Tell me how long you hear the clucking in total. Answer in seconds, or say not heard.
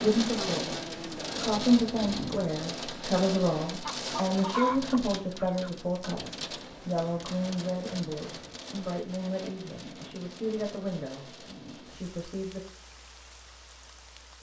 2 s.